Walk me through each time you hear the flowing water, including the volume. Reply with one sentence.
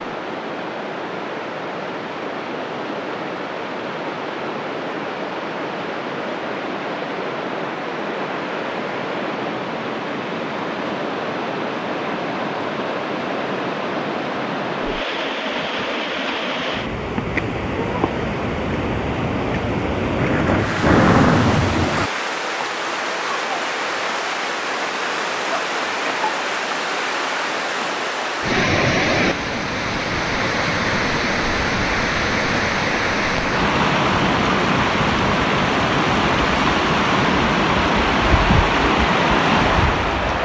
You can hear the flowing water from 0.0 to 40.3 s, getting louder.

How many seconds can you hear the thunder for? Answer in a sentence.
You can hear the thunder for 2 seconds altogether.